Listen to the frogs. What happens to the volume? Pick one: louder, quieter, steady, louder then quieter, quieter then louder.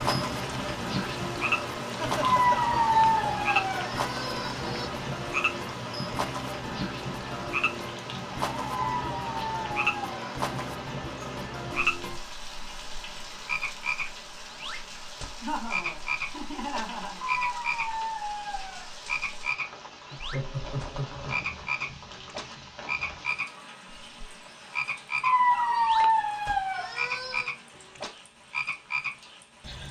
steady.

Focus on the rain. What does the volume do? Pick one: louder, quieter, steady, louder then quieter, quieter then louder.
quieter.